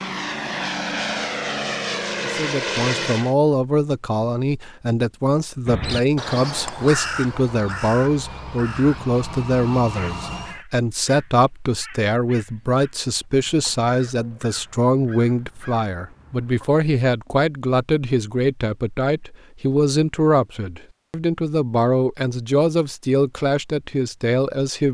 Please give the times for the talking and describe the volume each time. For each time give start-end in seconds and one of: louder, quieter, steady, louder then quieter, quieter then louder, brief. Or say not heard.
2.2-24.8 steady.